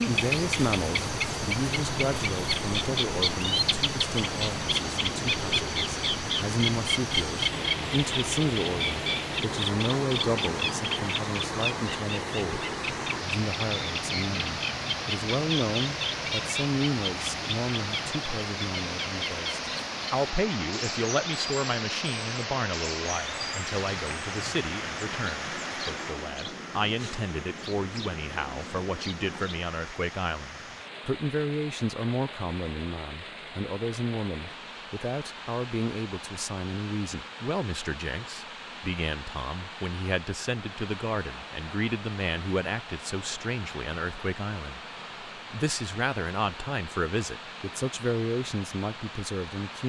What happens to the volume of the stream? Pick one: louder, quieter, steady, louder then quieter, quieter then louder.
quieter.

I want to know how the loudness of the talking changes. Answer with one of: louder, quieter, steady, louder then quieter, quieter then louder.
steady.